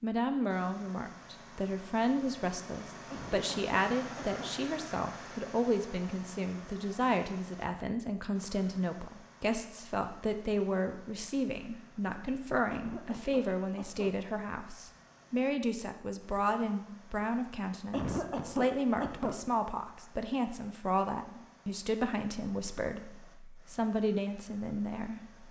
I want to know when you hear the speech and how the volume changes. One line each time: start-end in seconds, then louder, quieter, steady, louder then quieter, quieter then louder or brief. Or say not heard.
0.0-25.4 steady.